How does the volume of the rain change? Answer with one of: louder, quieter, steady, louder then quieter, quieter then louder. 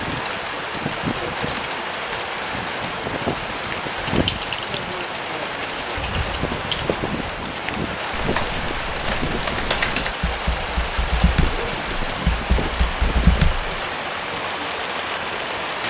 steady.